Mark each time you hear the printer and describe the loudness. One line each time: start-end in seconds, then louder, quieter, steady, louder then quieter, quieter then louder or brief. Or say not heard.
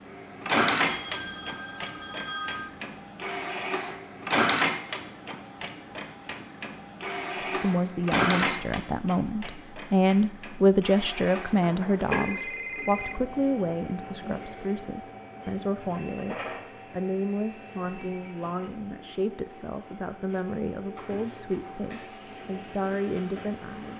0.0-23.9 quieter.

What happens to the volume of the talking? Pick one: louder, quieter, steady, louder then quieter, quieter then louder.
quieter.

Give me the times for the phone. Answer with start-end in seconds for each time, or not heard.
0.8-2.8, 11.6-13.2, 17.8-18.4.